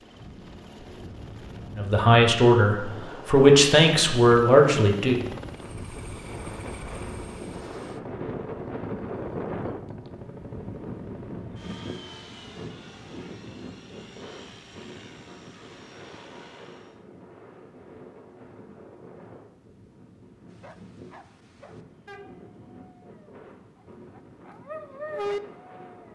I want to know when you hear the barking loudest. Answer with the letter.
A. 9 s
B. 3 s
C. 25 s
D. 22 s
C.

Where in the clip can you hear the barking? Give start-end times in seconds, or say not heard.
20.5-26.1.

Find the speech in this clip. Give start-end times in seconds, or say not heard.
1.8-5.2.